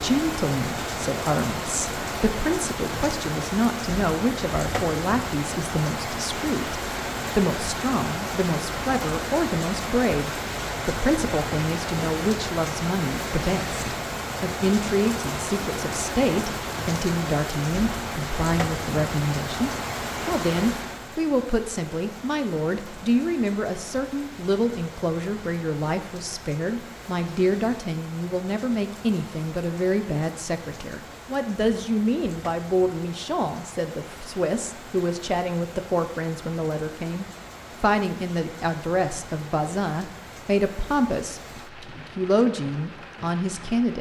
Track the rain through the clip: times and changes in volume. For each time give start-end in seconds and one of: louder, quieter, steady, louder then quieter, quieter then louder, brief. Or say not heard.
0.0-43.9 quieter.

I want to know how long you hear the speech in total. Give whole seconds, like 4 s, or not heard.
44 s.